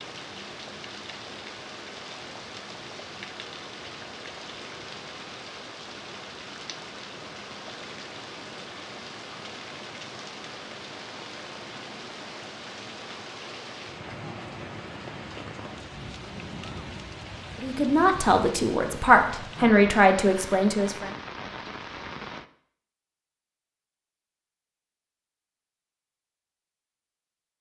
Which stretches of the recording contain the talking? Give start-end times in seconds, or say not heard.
17.6-21.1.